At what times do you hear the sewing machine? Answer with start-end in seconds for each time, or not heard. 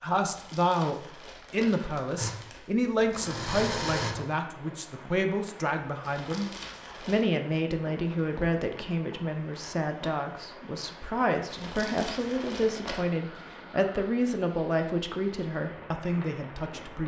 2.1-4.2.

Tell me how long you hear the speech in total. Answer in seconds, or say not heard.
17 s.